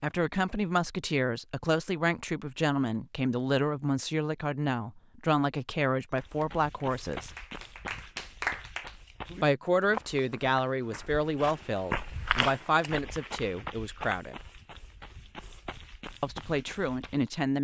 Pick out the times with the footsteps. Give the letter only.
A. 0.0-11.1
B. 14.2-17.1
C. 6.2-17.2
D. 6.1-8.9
C.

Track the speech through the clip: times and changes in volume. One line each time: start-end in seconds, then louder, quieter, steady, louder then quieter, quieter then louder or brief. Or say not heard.
0.0-7.3 steady
9.4-14.3 quieter
16.2-17.5 brief.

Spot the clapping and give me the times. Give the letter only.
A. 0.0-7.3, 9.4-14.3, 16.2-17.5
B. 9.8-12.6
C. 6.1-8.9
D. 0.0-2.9
C.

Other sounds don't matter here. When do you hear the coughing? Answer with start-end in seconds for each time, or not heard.
not heard.